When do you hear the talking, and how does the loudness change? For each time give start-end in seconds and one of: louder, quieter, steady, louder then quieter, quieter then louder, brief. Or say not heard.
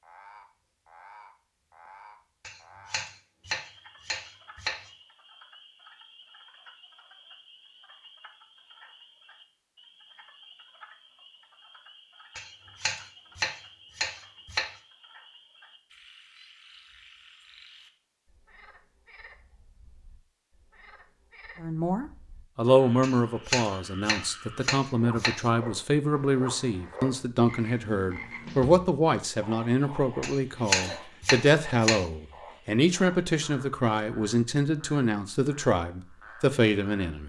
21.6-37.2 steady.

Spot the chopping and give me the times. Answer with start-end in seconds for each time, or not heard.
2.4-4.9, 12.3-14.7, 23.0-25.5, 30.2-32.0.